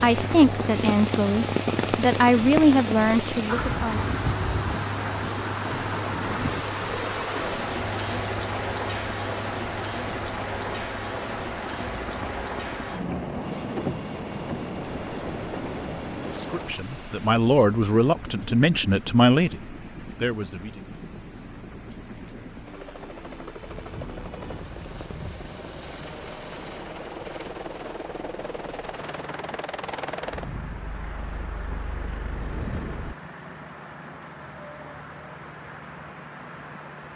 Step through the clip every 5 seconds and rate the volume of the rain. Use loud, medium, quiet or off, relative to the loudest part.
loud, loud, loud, medium, quiet, quiet, quiet, quiet.